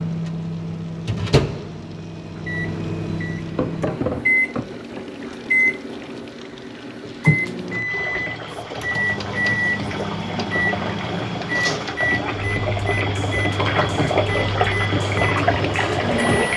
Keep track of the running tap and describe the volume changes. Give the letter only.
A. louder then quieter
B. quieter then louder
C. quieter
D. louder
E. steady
D.